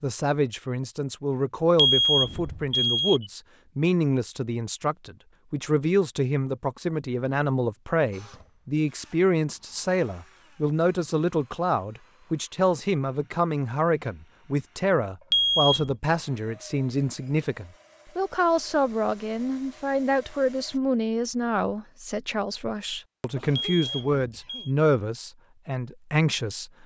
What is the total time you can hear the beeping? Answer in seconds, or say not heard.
3 s.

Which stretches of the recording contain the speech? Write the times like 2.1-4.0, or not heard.
0.0-26.7.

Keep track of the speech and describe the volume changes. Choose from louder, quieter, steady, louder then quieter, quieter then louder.
steady.